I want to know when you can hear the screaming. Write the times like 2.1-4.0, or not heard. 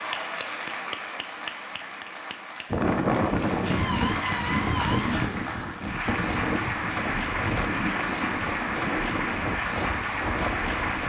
3.6-5.2.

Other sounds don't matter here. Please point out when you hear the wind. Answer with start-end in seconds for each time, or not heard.
2.7-11.0.